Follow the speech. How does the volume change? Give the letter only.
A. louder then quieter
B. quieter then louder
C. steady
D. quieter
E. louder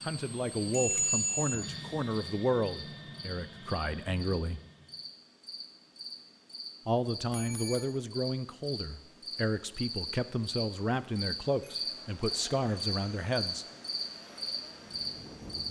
C.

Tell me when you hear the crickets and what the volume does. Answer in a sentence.
You can hear the crickets from 0.0 to 15.6 s, getting louder.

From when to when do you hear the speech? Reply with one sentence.
The speech can be heard from 0.0 to 4.6 s and from 6.8 to 13.7 s.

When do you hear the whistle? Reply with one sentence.
You can't hear the whistle here.